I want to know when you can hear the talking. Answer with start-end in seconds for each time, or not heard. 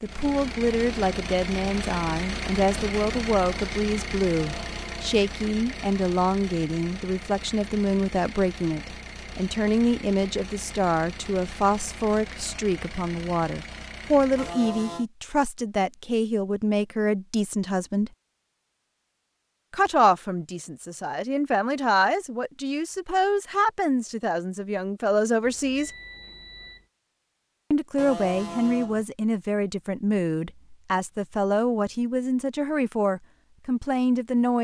0.0-18.1, 19.7-25.9, 27.7-34.5.